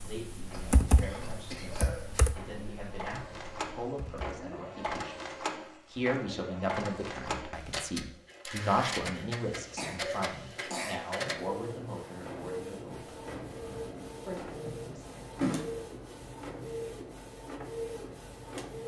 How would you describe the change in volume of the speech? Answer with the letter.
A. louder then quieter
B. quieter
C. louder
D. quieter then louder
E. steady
A.